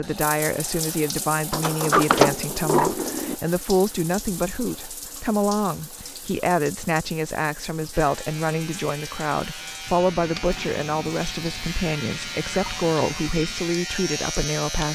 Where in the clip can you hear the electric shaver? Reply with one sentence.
You can hear the electric shaver from 7.9 to 14.9 s.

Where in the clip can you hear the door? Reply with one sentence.
The door can be heard from 1.5 to 3.4 s.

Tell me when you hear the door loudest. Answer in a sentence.
The loudest moment of the door is at 2 seconds.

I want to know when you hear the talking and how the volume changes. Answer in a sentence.
The talking can be heard from 0.0 to 14.9 s, at a steady volume.